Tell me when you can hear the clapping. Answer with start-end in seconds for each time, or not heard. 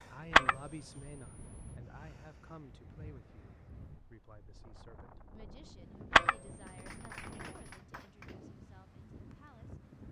6.7-8.3.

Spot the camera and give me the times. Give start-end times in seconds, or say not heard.
0.3-1.8, 6.1-7.8.